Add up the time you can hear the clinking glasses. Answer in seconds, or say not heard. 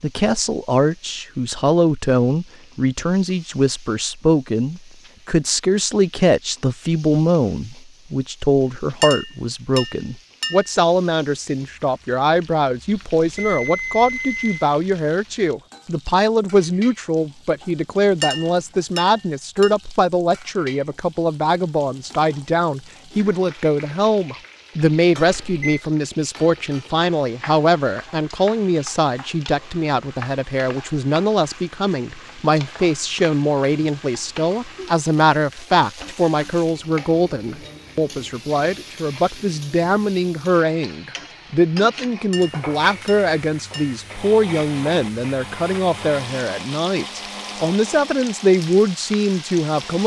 5 s.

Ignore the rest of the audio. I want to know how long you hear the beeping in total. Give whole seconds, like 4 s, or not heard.
2 s.